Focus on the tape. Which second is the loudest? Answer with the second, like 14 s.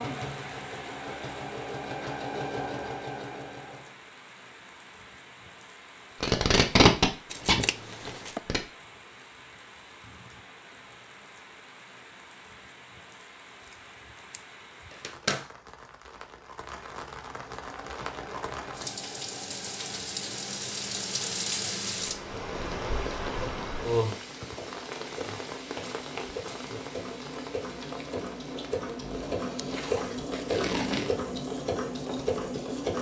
7 s.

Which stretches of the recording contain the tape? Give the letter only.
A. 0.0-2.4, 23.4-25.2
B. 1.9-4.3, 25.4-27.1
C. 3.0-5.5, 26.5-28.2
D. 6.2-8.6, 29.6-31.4
D.